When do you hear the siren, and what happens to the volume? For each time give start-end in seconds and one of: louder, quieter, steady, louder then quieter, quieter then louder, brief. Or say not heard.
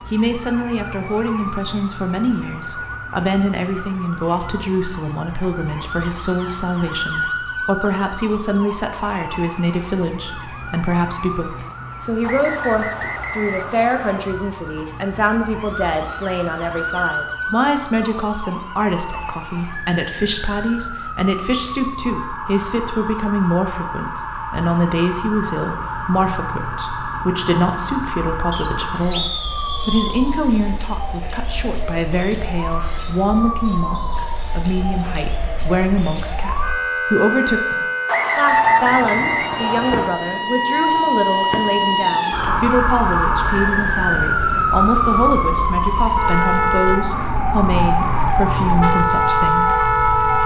0.0-50.4 louder.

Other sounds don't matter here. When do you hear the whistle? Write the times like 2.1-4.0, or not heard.
12.2-14.2, 28.5-30.2, 38.0-40.1.